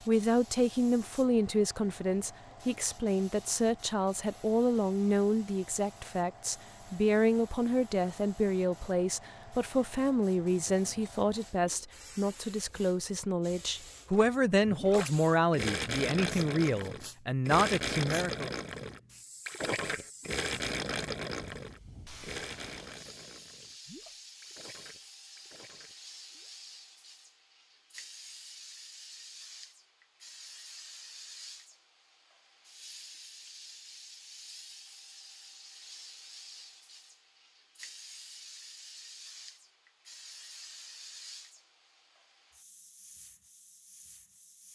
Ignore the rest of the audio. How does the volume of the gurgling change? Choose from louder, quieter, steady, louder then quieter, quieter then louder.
quieter.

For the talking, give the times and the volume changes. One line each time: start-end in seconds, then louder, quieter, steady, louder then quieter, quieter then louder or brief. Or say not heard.
0.1-18.5 steady.